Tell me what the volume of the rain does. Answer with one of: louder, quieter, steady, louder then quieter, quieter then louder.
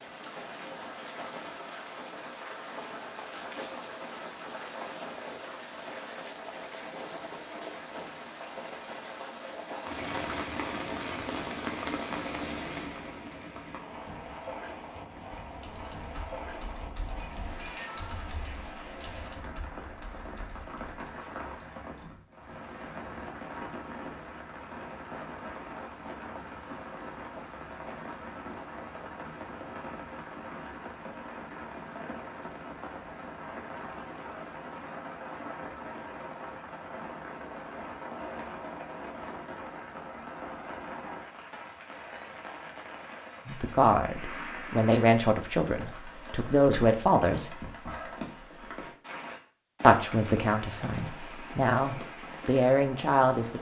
steady.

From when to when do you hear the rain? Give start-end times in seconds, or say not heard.
0.0-53.5.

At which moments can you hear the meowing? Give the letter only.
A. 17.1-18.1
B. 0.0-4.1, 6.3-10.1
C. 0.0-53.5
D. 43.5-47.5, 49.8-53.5
A.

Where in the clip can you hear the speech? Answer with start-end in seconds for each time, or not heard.
43.5-47.5, 49.8-53.5.